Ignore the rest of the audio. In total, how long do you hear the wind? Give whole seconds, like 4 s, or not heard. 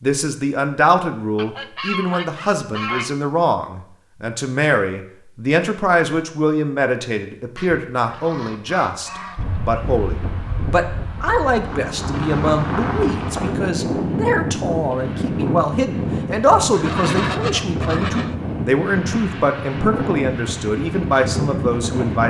13 s.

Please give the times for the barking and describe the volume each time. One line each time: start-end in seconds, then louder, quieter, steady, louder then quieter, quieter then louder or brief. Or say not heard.
not heard.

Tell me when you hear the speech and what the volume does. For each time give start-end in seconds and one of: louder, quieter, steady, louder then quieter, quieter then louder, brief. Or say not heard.
0.0-22.2 steady.